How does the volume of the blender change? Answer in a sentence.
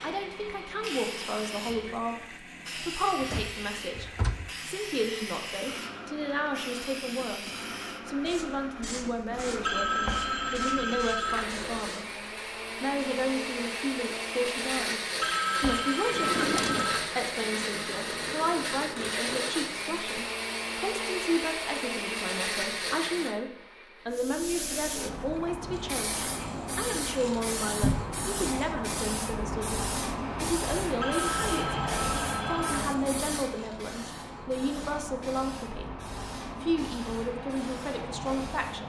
The volume of the blender goes up.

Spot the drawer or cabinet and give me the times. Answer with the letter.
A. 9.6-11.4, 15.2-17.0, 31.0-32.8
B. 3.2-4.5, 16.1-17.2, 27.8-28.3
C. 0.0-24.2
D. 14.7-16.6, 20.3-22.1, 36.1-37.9
B.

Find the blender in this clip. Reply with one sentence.
You can hear the blender from 0.0 to 24.2 s.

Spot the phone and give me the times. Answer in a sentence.
The phone can be heard from 9.6 to 11.4 s, from 15.2 to 17.0 s and from 31.0 to 32.8 s.